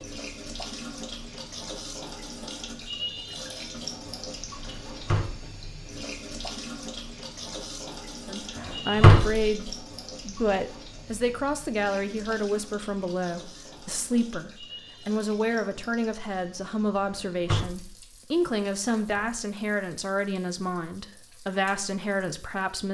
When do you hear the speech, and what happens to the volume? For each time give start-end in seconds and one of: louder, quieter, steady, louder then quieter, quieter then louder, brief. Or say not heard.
8.2-22.8 steady.